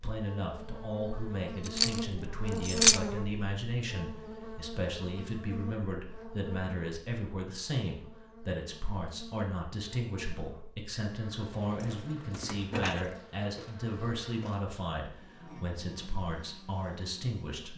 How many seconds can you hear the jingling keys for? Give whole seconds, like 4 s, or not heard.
3 s.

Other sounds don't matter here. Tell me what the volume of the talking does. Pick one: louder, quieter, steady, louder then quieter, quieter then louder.
steady.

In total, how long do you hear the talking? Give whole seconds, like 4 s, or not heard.
18 s.